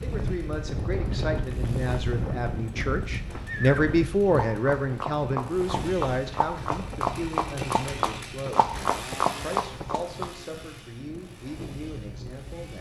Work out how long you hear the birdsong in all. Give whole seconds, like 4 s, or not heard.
not heard.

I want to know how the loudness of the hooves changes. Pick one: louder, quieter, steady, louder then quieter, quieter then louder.
louder.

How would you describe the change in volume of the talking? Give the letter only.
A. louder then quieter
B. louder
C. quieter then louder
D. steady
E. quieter
A.